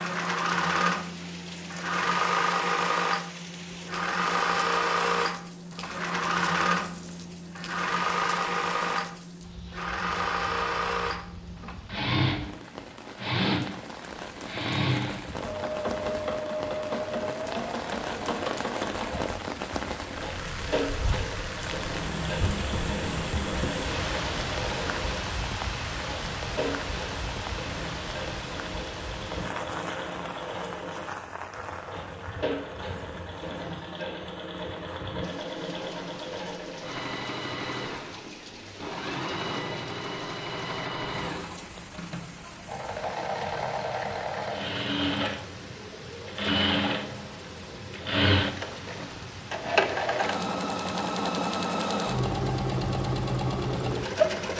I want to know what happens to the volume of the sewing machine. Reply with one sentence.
The volume of the sewing machine goes down, then up.